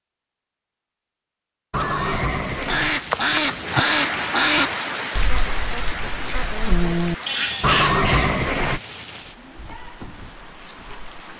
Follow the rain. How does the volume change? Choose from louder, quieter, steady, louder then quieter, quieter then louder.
quieter.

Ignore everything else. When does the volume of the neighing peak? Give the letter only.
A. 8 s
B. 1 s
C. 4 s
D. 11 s
A.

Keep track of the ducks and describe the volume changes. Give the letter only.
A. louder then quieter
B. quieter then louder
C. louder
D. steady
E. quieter
B.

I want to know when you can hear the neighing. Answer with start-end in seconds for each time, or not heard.
1.7-3.0, 7.6-8.8.